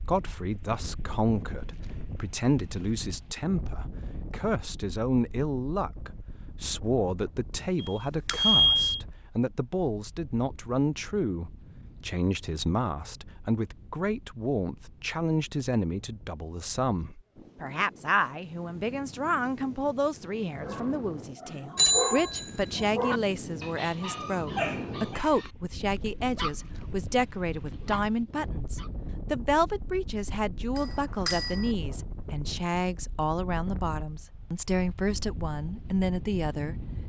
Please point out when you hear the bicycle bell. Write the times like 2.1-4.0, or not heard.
7.8-9.0, 21.8-22.9, 30.8-31.7.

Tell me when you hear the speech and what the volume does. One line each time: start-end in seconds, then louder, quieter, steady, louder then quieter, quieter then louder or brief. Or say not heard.
0.1-36.8 steady.